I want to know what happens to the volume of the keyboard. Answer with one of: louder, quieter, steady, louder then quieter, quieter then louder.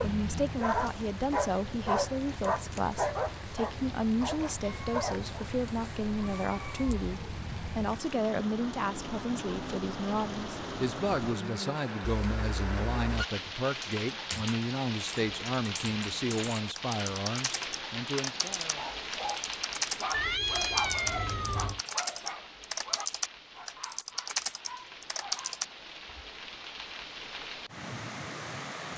louder.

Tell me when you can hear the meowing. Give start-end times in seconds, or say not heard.
4.6-5.2, 5.8-7.0, 12.0-13.2, 20.1-21.8.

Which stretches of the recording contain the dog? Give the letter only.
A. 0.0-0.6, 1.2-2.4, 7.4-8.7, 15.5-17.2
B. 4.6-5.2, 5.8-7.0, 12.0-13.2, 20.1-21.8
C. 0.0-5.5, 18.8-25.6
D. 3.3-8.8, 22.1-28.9
C.